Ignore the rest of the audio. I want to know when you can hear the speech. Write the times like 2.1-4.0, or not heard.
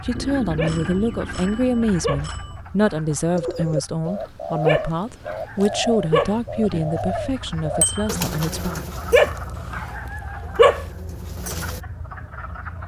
0.0-8.9.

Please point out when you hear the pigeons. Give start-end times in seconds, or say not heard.
3.4-11.8.